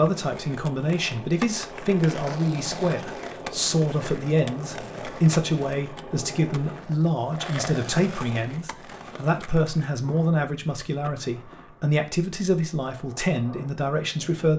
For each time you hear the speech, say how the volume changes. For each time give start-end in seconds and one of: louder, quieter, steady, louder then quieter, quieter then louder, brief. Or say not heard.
0.0-14.5 steady.